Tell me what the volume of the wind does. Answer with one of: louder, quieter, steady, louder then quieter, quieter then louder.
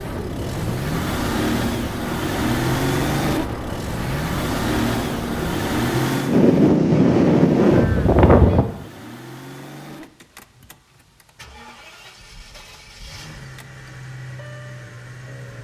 louder.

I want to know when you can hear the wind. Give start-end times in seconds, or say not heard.
0.0-8.7.